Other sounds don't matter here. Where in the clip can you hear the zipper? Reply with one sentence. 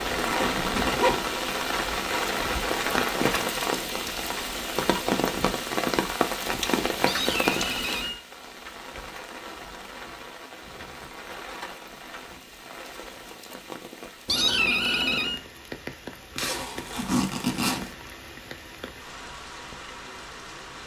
The zipper can be heard from 0.1 to 1.2 s and from 16.4 to 17.9 s.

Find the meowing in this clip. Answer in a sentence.
The meowing can be heard from 7.0 to 8.2 s and from 14.2 to 15.4 s.